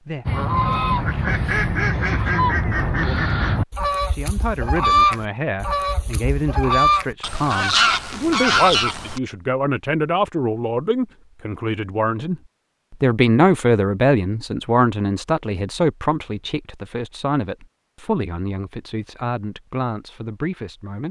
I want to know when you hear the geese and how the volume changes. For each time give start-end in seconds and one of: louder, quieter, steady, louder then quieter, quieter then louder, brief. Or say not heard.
0.2-9.2 steady.